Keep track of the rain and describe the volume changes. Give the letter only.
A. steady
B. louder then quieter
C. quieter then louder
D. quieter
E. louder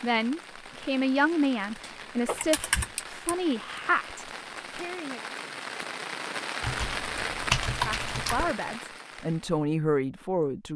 E.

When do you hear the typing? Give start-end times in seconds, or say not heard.
1.8-3.4, 6.6-8.6.